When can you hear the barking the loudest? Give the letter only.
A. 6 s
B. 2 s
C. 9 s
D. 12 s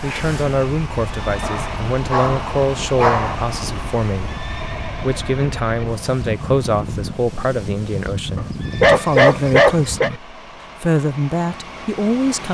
C.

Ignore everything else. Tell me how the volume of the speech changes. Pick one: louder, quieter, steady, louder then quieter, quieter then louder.
steady.